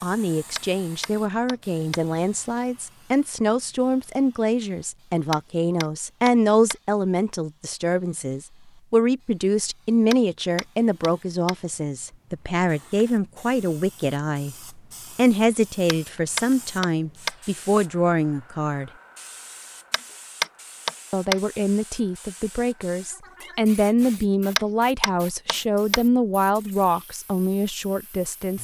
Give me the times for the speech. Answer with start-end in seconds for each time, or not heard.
0.0-18.9, 21.1-28.6.